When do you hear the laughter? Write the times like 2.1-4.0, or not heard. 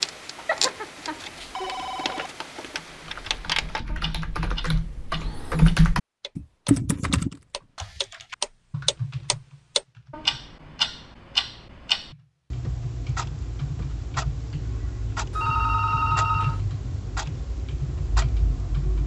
not heard.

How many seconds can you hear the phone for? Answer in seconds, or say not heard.
3 s.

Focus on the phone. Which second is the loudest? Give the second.
16 s.